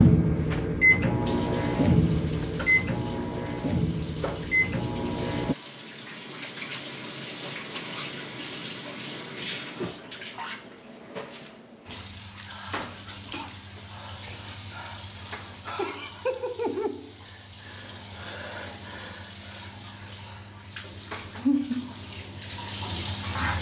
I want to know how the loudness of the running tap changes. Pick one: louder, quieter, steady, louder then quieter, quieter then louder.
louder.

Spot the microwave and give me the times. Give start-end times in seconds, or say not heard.
0.0-5.5.